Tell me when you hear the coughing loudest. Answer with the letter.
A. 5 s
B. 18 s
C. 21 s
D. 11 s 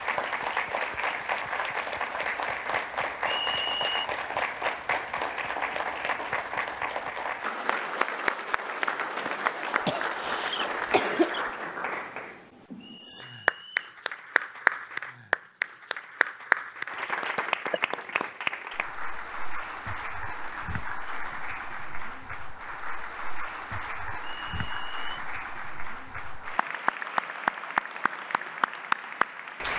D.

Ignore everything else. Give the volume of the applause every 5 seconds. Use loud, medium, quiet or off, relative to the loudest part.
loud, loud, loud, loud, medium, loud.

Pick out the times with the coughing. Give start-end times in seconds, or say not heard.
9.8-11.4, 17.2-18.3.